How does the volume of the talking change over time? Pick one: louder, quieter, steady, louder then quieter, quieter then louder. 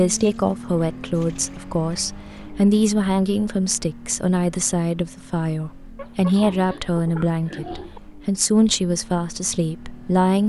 steady.